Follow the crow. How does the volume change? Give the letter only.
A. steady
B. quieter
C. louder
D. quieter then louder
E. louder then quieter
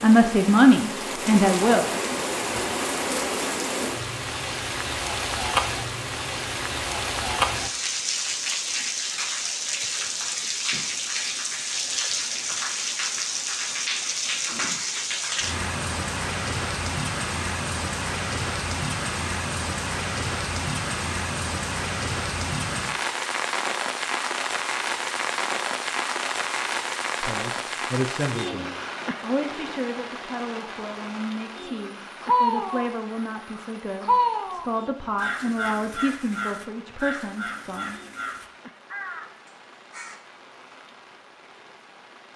B.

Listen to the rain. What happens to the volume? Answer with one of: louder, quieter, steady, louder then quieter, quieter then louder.
quieter.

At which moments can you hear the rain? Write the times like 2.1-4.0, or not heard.
0.0-42.3.